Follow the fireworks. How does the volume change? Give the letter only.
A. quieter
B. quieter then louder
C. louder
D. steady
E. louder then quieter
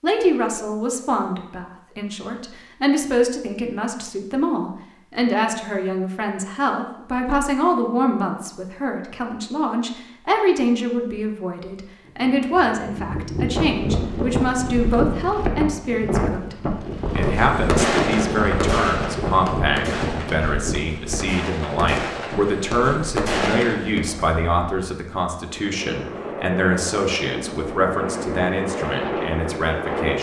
B.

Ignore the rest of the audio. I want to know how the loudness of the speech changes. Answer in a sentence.
The volume of the speech stays about the same.